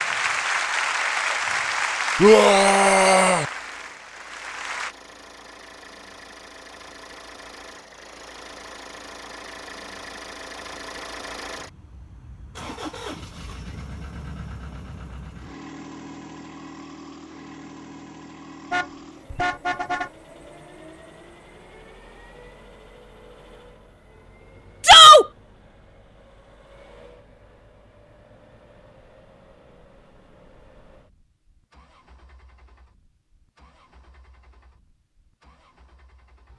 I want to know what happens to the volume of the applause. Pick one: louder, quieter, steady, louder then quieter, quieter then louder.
quieter.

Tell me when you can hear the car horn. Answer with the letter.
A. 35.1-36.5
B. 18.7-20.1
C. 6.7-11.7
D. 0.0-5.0
B.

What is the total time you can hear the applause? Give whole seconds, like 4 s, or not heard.
5 s.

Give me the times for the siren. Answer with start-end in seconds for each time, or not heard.
not heard.